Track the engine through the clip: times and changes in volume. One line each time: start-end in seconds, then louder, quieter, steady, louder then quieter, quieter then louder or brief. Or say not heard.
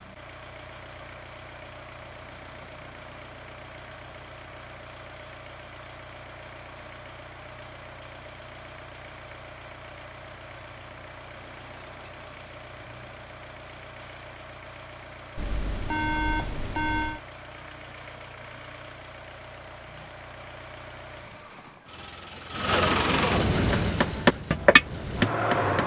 0.0-25.8 louder.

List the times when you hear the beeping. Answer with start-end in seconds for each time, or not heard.
15.3-17.2.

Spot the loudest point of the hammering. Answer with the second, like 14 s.
25 s.